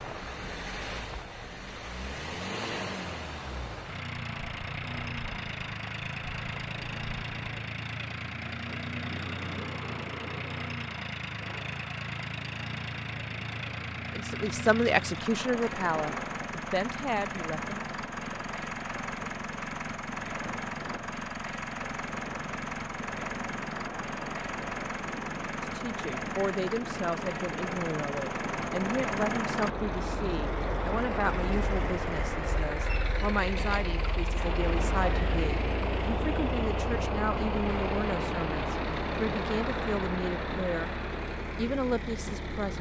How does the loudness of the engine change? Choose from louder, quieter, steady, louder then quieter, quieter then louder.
steady.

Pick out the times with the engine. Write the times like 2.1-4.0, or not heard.
0.0-42.7.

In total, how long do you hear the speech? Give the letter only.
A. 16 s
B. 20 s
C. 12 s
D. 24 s
B.